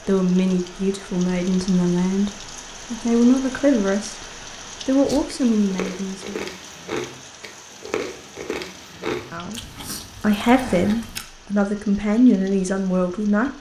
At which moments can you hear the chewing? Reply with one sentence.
The chewing can be heard from 5.0 to 11.2 s.